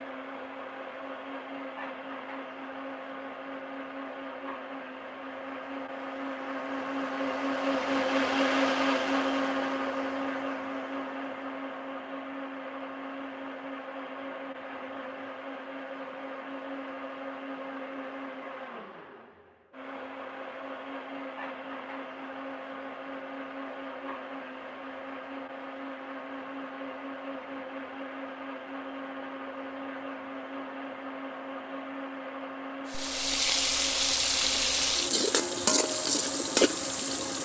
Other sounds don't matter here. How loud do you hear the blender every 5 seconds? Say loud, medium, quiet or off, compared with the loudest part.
medium, loud, medium, medium, medium, medium, medium, medium.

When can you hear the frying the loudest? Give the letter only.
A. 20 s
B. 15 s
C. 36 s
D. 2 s
C.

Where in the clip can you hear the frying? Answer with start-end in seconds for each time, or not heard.
32.9-37.3.